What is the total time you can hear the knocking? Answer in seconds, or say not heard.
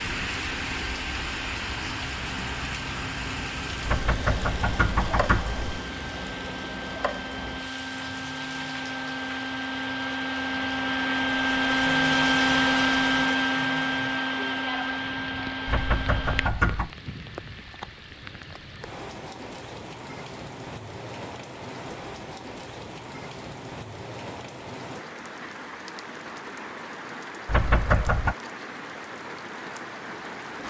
4 s.